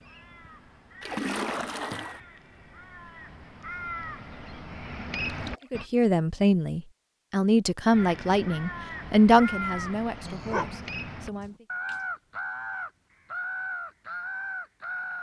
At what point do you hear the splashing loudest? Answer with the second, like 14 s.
1 s.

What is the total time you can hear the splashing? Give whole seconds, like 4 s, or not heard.
2 s.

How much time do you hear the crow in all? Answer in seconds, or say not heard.
13 s.